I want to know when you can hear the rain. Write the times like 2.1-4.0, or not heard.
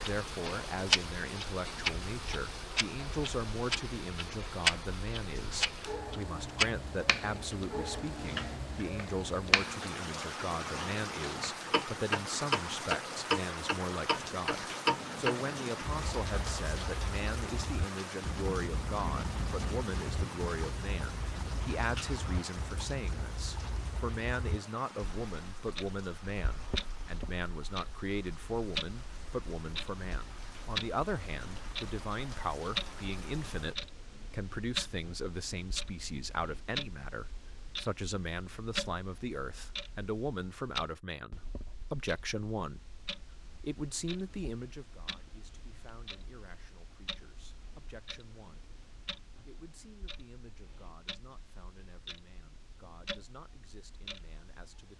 0.0-33.8.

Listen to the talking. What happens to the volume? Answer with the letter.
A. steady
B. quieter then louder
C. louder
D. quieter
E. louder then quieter
D.